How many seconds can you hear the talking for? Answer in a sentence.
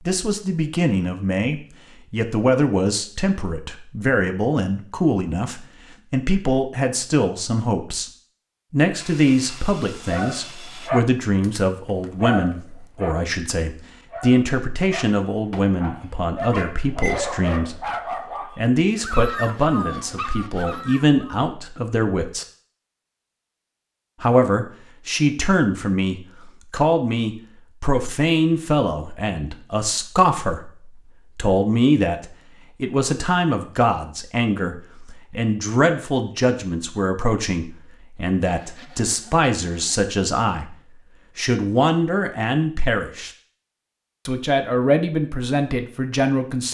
You can hear the talking for 42 seconds altogether.